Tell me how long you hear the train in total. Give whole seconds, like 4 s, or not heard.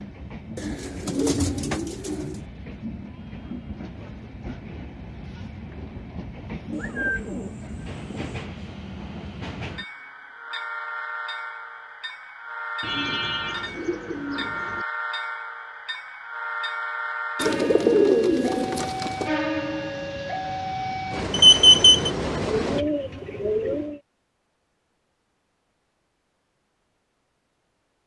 23 s.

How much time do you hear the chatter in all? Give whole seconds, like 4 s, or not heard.
not heard.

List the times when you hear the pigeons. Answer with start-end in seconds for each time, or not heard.
0.6-2.4, 6.7-8.4, 12.8-14.8, 17.4-19.3, 22.4-24.0.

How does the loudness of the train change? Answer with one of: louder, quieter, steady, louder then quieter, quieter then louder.
louder.